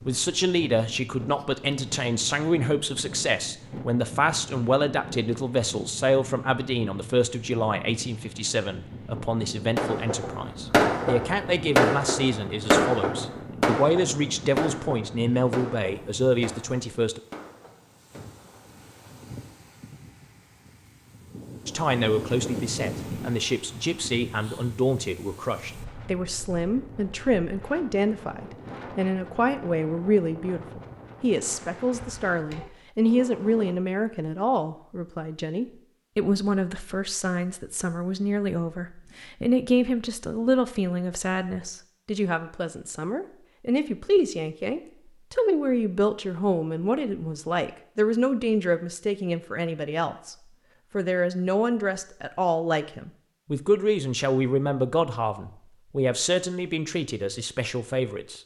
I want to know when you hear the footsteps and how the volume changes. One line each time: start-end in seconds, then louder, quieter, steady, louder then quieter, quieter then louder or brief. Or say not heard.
not heard.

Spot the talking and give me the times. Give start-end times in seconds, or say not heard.
0.1-17.2, 21.6-58.4.